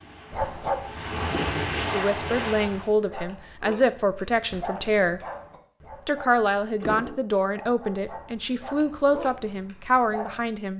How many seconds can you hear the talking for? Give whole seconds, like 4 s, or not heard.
8 s.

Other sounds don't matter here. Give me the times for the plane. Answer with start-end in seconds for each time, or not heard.
0.0-2.9.